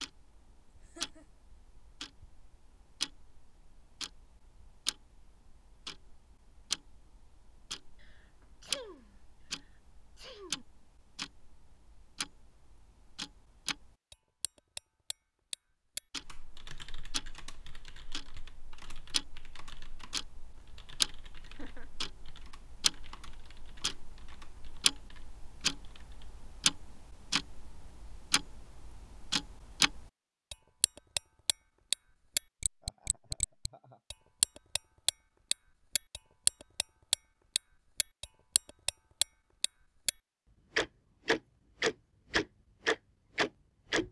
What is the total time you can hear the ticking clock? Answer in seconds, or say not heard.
43 s.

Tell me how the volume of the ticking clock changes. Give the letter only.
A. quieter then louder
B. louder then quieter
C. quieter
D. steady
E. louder
E.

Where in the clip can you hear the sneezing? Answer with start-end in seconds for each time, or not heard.
8.0-10.7.